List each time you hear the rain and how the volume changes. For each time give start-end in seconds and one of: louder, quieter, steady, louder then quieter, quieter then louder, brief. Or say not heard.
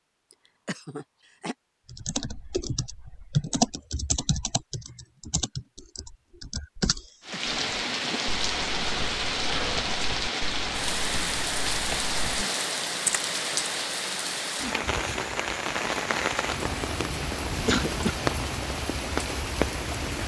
7.2-20.2 steady.